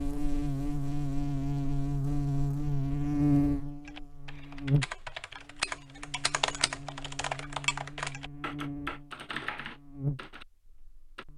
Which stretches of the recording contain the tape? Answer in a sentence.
The tape can't be heard in this clip.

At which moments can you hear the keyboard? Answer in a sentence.
The keyboard can be heard from 3.9 to 10.4 s.